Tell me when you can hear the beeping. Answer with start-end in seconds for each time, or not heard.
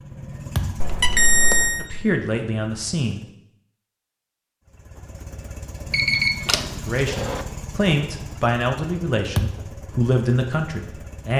0.8-1.9, 5.9-7.5.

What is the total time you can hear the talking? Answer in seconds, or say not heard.
6 s.